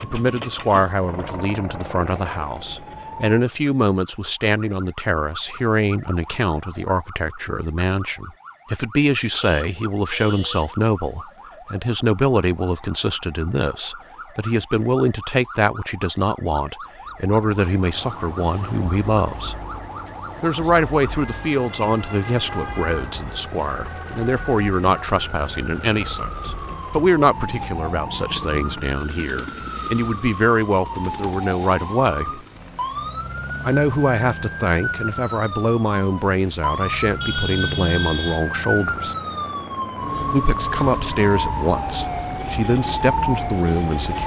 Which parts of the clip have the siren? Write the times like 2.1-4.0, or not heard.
0.0-44.2.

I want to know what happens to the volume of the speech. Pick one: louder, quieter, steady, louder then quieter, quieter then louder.
steady.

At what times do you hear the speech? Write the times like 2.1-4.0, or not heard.
0.0-19.6, 20.4-32.4, 33.6-39.1, 40.3-44.2.